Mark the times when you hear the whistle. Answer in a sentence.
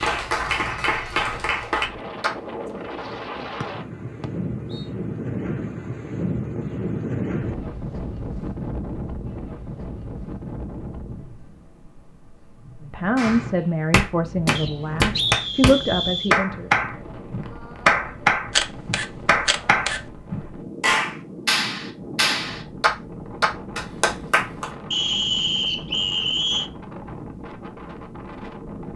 The whistle can be heard from 3.6 to 4.8 s, from 14.6 to 16.4 s and from 24.9 to 26.7 s.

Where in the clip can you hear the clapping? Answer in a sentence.
You can hear the clapping from 0.0 to 2.4 s and from 13.2 to 24.7 s.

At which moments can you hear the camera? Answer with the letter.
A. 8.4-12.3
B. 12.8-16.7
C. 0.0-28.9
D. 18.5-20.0
D.